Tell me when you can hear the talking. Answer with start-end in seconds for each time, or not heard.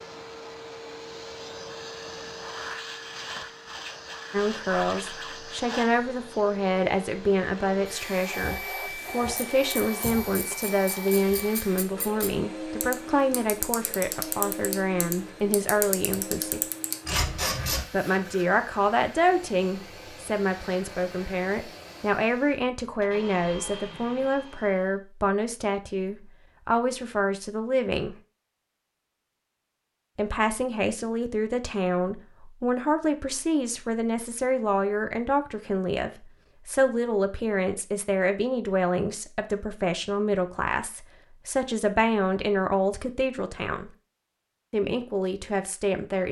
4.3-16.6, 17.9-28.1, 30.1-43.9, 44.7-46.2.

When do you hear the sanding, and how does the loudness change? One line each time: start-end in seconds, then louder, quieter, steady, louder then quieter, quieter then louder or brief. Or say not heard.
not heard.